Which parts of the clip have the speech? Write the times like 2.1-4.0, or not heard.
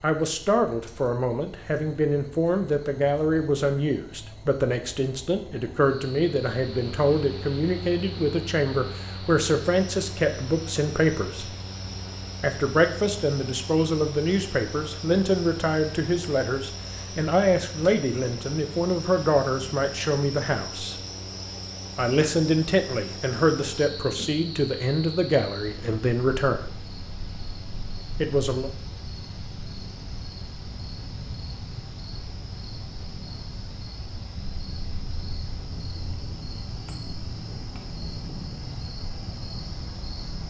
0.0-11.5, 12.4-20.9, 21.9-26.7, 28.2-28.7.